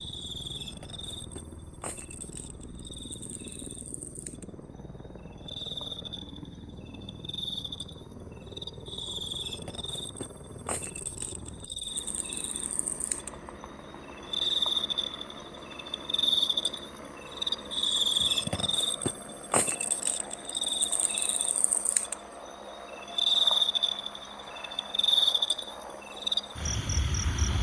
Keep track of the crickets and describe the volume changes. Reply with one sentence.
The volume of the crickets goes up.